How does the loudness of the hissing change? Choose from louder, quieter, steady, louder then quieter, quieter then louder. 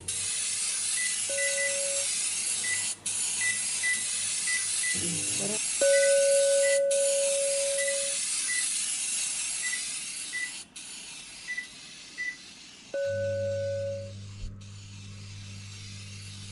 quieter.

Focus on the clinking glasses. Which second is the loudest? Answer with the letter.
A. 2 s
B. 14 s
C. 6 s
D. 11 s
C.